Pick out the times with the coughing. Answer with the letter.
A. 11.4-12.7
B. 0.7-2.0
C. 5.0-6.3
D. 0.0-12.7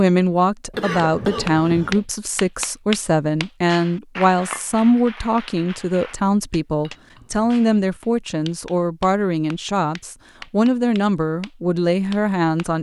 B.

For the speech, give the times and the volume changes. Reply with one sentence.
The speech can be heard from 0.0 to 12.7 s, at a steady volume.